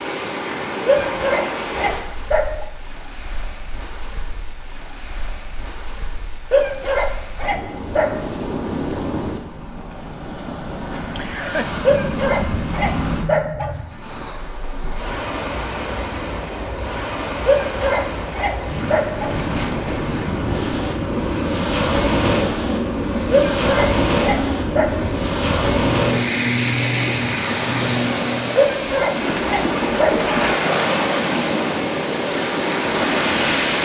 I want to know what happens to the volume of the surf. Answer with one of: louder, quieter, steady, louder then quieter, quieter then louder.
louder.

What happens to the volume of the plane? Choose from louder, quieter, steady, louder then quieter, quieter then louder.
steady.